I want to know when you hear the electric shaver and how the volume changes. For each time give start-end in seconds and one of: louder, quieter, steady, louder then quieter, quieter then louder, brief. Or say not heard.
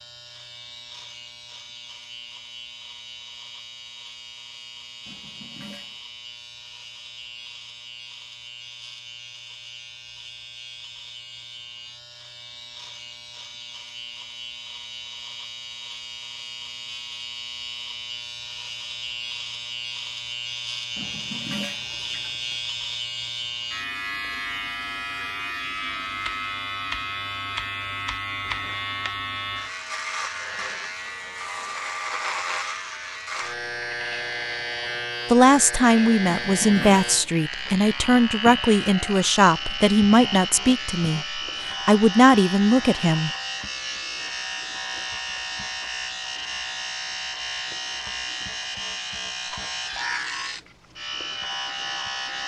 0.0-52.4 louder.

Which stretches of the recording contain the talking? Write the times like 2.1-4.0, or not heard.
35.3-43.3.